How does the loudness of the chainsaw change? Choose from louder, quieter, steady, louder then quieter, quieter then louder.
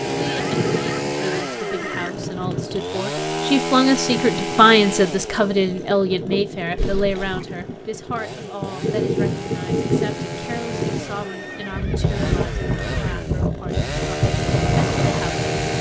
quieter then louder.